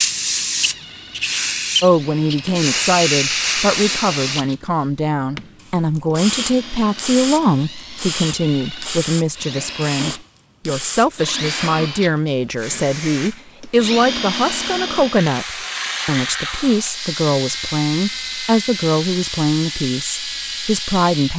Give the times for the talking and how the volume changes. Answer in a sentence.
The talking can be heard from 1.8 to 21.3 s, at a steady volume.